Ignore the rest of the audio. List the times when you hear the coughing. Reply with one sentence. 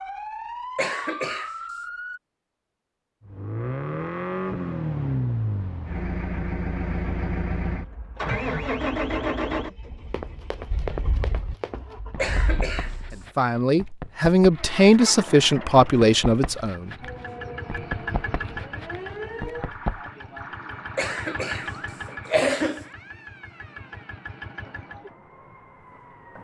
The coughing can be heard from 0.8 to 1.6 s, from 12.2 to 12.9 s and from 20.9 to 22.9 s.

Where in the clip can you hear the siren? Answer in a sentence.
The siren can be heard from 0.0 to 2.2 s and from 17.0 to 26.3 s.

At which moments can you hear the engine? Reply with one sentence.
You can hear the engine from 3.2 to 13.2 s and from 14.5 to 25.1 s.